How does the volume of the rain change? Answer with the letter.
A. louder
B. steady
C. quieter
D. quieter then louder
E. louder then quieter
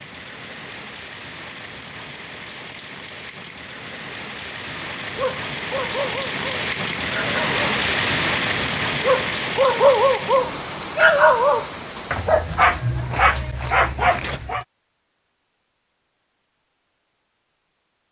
E.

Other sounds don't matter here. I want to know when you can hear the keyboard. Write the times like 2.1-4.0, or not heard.
not heard.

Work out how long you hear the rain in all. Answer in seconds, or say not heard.
13 s.